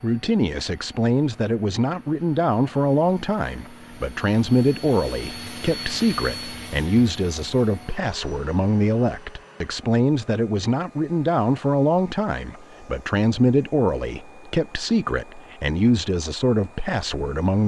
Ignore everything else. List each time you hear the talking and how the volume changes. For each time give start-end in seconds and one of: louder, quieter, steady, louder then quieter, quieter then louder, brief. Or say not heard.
0.0-17.6 steady.